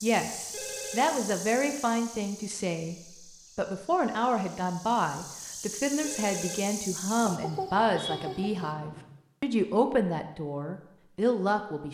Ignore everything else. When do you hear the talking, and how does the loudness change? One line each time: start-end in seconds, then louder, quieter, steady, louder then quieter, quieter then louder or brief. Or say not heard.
0.0-11.9 steady.